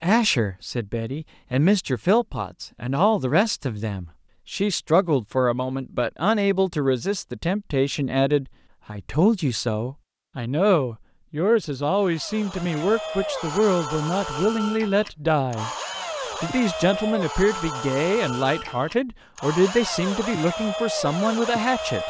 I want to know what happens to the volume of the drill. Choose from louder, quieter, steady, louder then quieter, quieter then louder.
steady.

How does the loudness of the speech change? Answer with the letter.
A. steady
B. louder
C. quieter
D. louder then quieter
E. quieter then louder
A.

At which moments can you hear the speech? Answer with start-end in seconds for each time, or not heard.
0.0-15.7, 16.4-22.0.